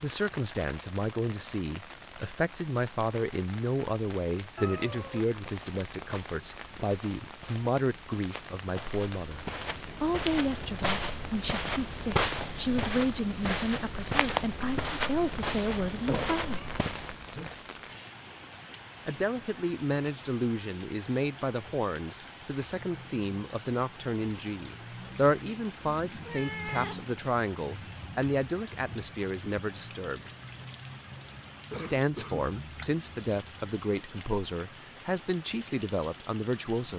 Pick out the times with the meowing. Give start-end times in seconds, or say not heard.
4.5-5.2, 16.1-18.1, 26.2-27.1.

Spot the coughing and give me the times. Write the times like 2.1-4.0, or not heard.
31.7-32.5.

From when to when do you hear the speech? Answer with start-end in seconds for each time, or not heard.
0.0-16.7, 19.1-30.2, 31.8-36.9.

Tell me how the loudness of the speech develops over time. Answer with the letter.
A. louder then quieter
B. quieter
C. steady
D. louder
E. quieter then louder
C.